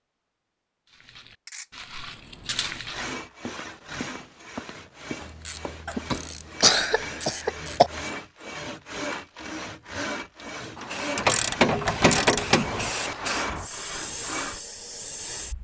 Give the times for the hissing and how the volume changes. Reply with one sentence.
You can hear the hissing from 10.8 to 15.6 s, getting louder then quieter.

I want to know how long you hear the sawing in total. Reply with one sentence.
The sawing can be heard for 12 seconds in total.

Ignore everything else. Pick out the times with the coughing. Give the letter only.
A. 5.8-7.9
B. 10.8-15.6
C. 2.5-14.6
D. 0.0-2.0
A.